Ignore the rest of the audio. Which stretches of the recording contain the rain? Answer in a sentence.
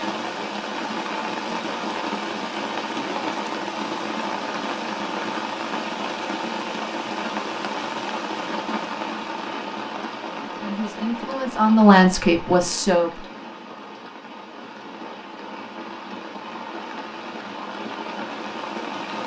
You can hear the rain from 0.0 to 19.2 s.